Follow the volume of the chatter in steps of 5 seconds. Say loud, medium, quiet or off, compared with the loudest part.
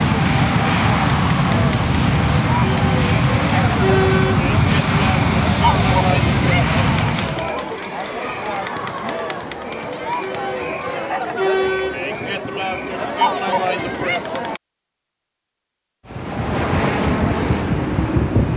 loud, loud, loud, off.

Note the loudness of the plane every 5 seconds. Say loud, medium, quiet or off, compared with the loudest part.
loud, loud, off, loud.